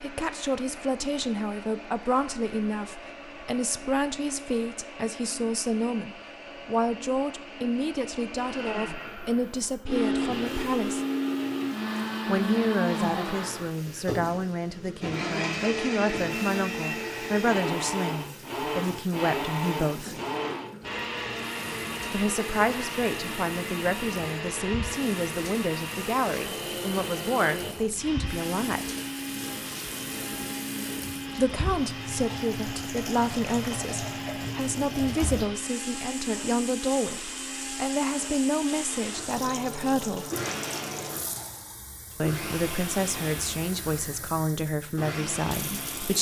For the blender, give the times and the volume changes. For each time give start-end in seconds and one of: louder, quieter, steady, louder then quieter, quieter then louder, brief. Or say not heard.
0.0-46.1 louder then quieter.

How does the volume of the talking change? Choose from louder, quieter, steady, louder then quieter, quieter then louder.
steady.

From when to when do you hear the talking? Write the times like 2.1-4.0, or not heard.
0.0-11.1, 12.2-20.1, 22.1-28.9, 31.4-40.3, 42.2-46.1.